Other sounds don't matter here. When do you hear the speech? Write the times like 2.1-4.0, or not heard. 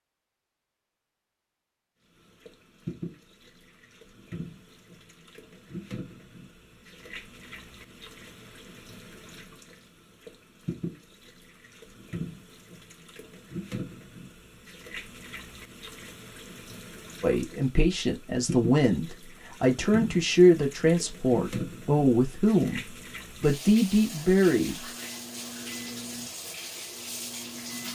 17.2-24.8.